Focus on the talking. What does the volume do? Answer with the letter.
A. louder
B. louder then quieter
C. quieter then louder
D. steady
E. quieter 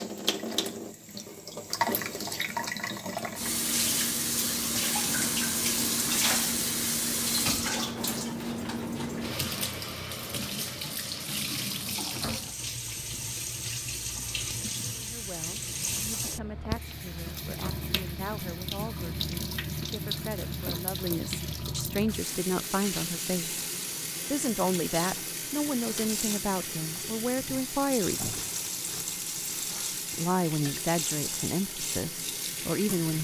A.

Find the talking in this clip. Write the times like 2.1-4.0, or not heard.
14.9-23.6, 24.2-28.4, 30.1-33.1.